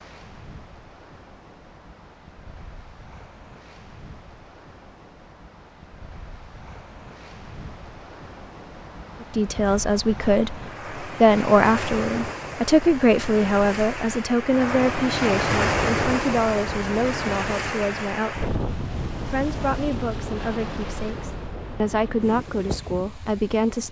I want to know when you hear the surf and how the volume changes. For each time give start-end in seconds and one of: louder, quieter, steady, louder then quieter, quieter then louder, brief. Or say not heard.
0.0-23.8 louder then quieter.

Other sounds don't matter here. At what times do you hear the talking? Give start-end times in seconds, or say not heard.
9.2-18.5, 19.2-23.8.